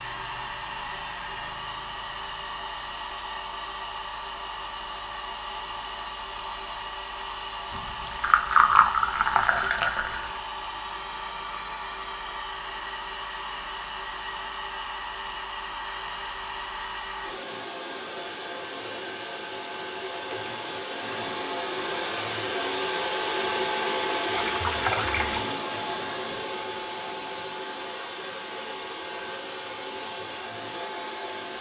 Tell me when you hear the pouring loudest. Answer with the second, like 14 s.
9 s.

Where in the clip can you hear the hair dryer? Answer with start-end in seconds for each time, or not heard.
0.0-31.5.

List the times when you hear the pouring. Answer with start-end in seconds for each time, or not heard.
7.7-10.4, 24.3-25.4.